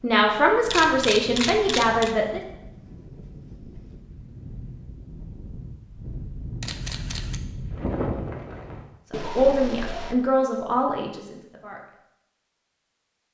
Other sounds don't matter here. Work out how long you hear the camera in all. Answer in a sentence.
The camera can be heard for 3 seconds in total.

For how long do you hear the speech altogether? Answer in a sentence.
You can hear the speech for 5 seconds altogether.